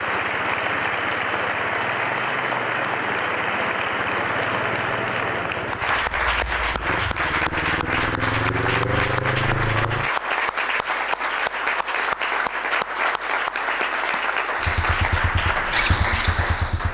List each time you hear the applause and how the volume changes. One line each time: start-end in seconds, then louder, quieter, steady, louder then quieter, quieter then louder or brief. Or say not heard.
0.0-16.8 steady.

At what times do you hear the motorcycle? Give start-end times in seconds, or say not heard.
0.0-10.1, 14.6-16.8.